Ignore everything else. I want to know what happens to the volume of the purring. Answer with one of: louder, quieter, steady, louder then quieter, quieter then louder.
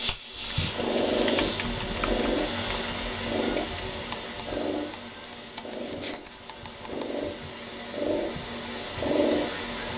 quieter then louder.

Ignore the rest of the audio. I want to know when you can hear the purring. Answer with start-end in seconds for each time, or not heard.
0.0-9.9.